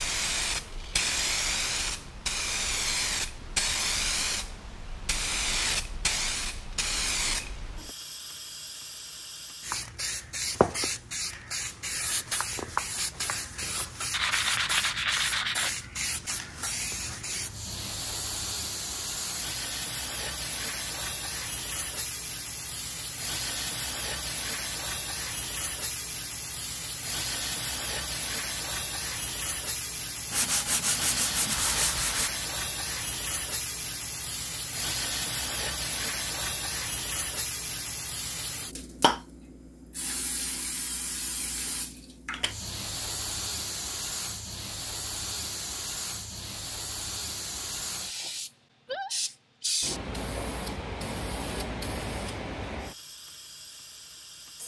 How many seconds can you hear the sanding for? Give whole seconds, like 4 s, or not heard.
4 s.